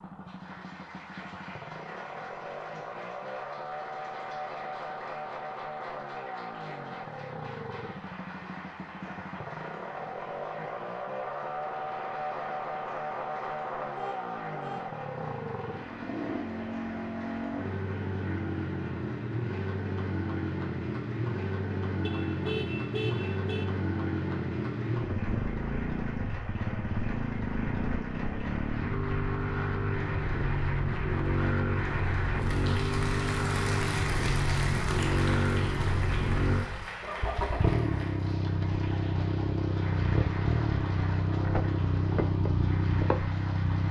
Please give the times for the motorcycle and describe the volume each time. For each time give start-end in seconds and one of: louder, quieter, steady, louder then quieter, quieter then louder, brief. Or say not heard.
0.0-43.8 louder.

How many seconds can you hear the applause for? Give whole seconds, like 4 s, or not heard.
44 s.